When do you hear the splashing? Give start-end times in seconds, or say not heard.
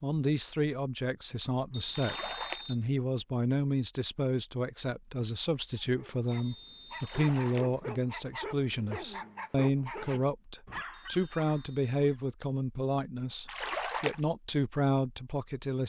1.9-2.7, 7.0-7.8, 13.4-14.2.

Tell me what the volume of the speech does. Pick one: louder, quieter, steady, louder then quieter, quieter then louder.
steady.